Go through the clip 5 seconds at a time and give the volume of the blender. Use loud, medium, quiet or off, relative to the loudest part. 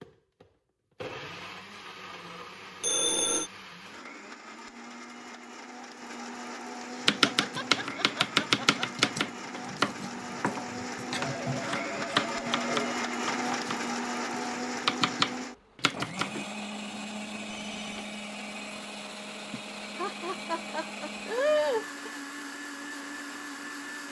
medium, medium, loud, medium, medium.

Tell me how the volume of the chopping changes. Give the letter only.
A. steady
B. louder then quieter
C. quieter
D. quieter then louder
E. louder
D.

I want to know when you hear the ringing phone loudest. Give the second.
3 s.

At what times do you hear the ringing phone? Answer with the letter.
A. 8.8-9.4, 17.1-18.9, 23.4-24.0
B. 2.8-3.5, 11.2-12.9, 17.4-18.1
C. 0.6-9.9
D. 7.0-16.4
B.